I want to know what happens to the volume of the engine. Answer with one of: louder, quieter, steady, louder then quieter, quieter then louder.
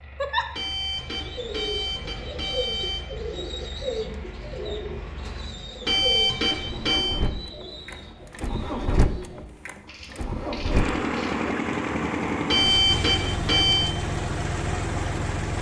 louder.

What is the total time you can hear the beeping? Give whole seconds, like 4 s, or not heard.
5 s.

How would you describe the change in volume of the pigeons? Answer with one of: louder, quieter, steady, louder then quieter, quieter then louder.
quieter then louder.